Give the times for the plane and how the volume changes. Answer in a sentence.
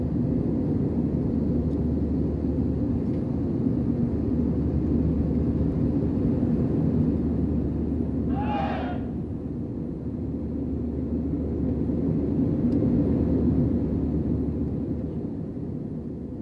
You can hear the plane from 0.0 to 16.3 s, at a steady volume.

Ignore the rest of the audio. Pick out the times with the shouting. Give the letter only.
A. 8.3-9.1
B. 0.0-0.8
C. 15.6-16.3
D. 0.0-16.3
A.